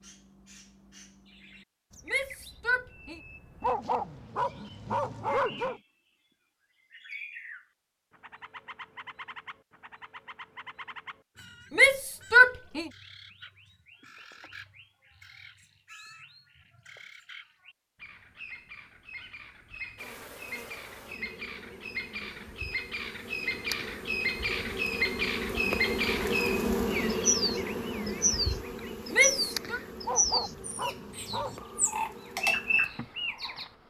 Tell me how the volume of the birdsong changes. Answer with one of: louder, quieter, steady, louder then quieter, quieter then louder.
louder.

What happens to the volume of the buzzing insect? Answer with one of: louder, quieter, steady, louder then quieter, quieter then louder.
louder then quieter.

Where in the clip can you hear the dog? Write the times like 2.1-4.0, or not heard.
3.6-5.8, 30.0-31.6.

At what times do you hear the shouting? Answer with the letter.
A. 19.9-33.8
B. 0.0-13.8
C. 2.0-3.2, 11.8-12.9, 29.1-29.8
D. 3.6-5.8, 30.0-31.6
C.